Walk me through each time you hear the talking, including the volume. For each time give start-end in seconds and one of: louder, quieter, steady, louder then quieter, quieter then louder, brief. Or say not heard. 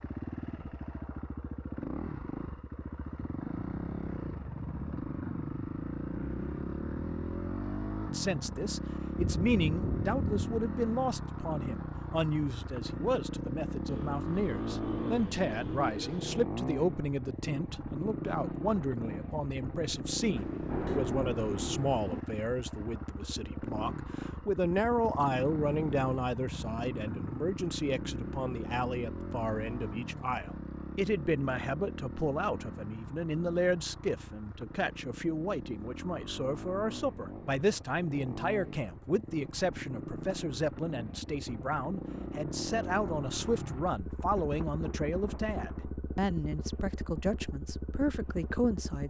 8.1-49.0 steady.